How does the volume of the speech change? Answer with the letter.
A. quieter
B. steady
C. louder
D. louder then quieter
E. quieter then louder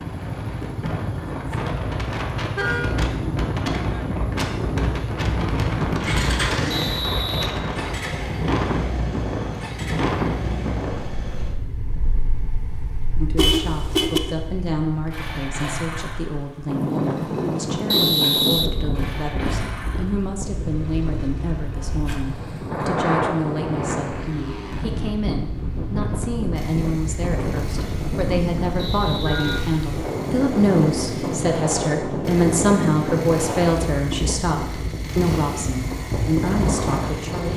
C.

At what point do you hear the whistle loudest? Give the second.
18 s.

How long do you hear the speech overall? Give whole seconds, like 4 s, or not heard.
24 s.